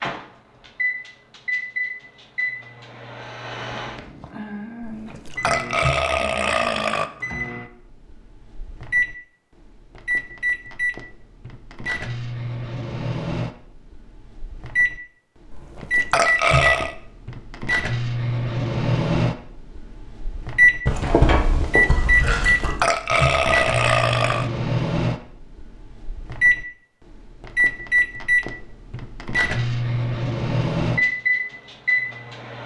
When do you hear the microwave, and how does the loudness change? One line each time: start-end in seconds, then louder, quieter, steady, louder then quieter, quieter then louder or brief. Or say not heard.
0.0-32.6 louder.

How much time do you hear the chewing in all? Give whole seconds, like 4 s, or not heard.
2 s.